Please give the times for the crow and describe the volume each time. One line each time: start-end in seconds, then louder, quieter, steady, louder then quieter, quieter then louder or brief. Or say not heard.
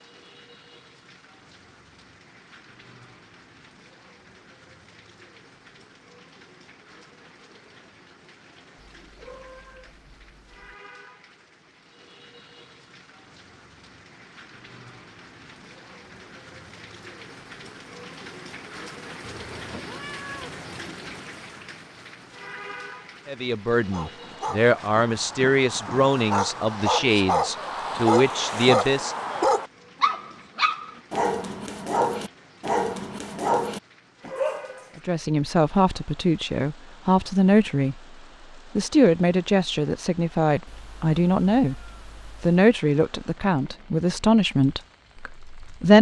not heard.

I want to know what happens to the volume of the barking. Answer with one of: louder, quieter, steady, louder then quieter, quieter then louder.
louder.